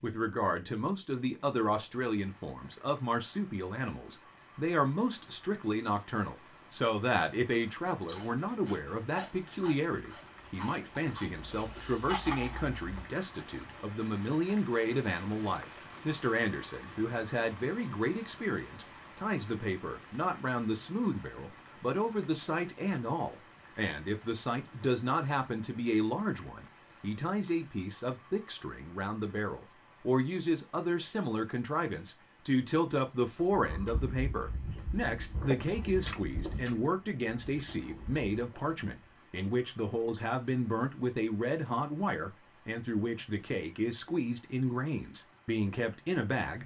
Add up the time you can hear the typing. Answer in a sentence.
You can't hear the typing here.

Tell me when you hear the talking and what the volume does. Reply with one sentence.
The talking can be heard from 0.0 to 46.6 s, at a steady volume.